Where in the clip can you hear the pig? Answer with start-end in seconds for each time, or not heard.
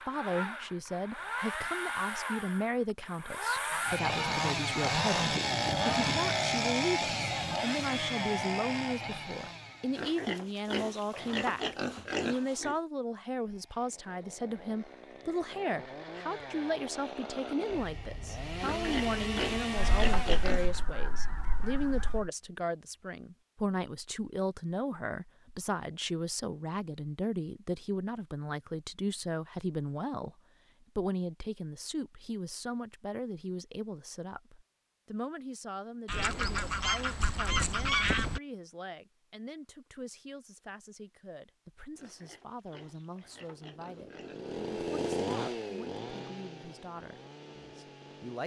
9.9-12.8, 18.6-20.8, 42.0-44.5.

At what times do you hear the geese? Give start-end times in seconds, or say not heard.
3.7-6.2, 19.8-22.3, 36.0-38.4.